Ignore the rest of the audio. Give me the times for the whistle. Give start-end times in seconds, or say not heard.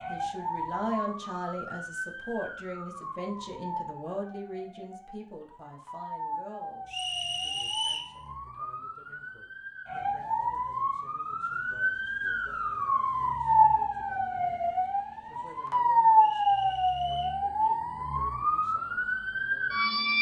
6.9-8.2, 16.1-17.4.